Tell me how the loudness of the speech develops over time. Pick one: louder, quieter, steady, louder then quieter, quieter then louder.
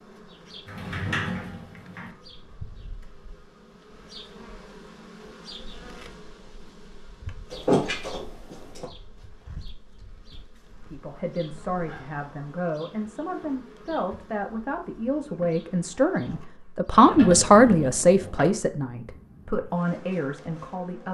louder then quieter.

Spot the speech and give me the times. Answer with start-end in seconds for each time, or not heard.
10.8-21.0.